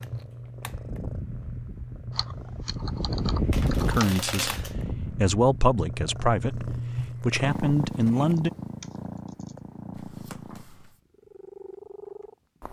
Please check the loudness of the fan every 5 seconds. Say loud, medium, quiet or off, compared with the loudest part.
loud, medium, off.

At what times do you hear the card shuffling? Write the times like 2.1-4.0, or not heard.
3.5-4.8, 9.9-11.0.